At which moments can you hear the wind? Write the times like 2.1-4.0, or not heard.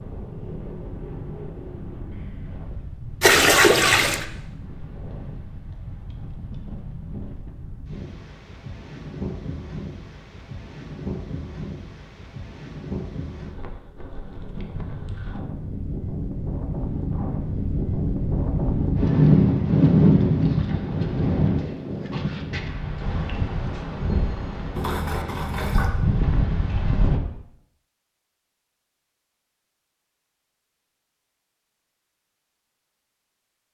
0.0-27.2.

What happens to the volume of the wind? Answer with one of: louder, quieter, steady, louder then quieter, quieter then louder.
louder then quieter.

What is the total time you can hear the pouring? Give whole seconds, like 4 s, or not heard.
2 s.